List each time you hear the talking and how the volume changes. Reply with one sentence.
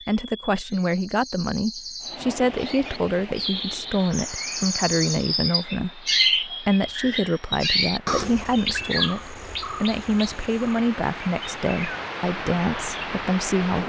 The talking can be heard from 0.1 to 13.8 s, at a steady volume.